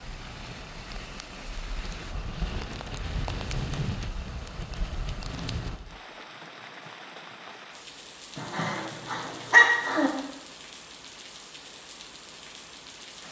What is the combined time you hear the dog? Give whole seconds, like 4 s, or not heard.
2 s.